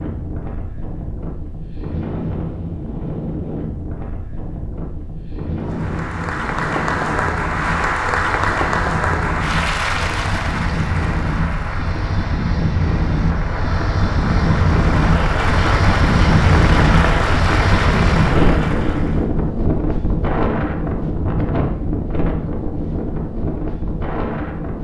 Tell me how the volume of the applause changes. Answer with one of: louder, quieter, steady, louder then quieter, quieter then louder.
quieter then louder.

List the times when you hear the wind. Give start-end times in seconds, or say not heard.
0.0-24.7.